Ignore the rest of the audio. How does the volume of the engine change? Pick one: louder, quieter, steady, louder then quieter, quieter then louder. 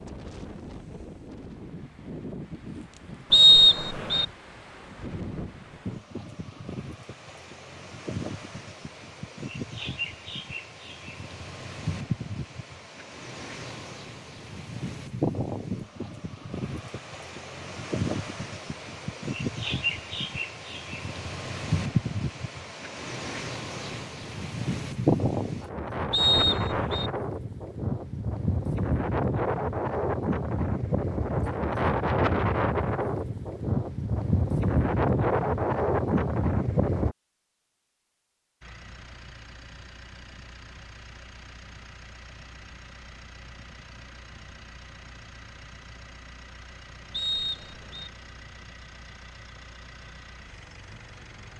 steady.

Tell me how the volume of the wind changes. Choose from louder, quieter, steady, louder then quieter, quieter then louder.
louder.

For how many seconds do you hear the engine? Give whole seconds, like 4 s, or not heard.
13 s.